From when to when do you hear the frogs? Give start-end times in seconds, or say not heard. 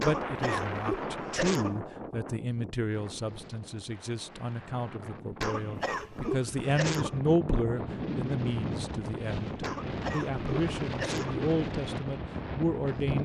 not heard.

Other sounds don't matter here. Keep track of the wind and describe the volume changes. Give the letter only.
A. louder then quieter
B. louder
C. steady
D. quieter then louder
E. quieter
D.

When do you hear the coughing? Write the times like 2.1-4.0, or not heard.
0.0-1.8, 5.4-7.2, 9.6-11.4.